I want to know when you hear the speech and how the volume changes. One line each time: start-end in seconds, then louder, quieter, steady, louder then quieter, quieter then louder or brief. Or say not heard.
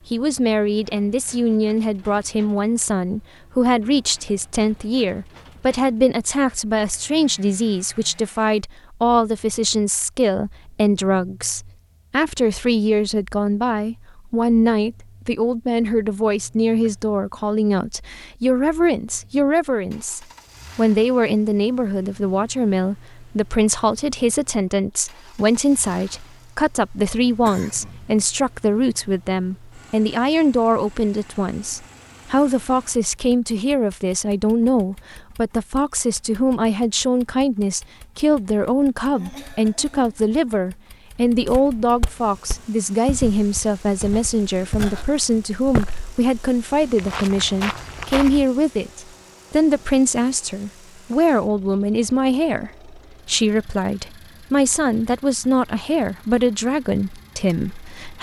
0.1-58.1 steady.